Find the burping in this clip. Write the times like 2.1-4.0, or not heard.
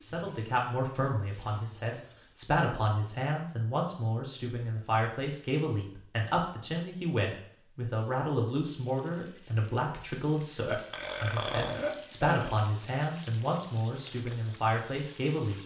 10.7-12.7.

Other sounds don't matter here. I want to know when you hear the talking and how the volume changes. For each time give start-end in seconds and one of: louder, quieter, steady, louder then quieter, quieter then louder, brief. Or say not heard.
0.0-15.6 steady.